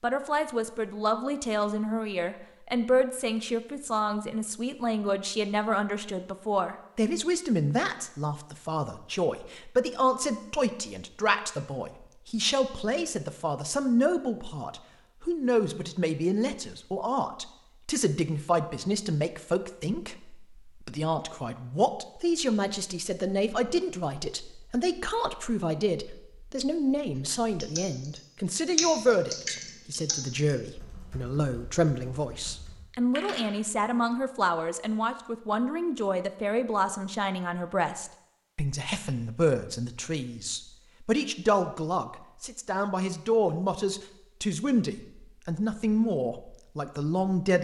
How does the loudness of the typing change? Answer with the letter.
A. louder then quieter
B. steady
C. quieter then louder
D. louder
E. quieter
C.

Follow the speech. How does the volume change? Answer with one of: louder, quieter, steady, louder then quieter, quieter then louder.
steady.